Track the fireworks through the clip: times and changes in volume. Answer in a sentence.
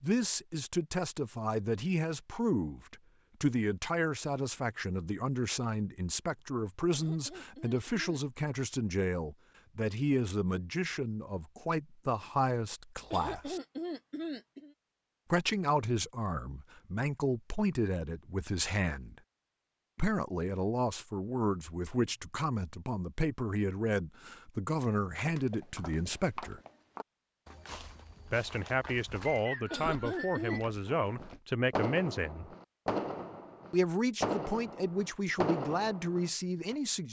The fireworks can be heard from 30.9 to 36.8 s, at a steady volume.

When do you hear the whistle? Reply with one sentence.
You can hear the whistle from 29.2 to 30.6 s.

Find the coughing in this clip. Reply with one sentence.
You can hear the coughing from 6.9 to 8.2 s, from 13.1 to 14.8 s and from 29.7 to 30.6 s.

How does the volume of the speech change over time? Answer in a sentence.
The loudness of the speech stays about the same.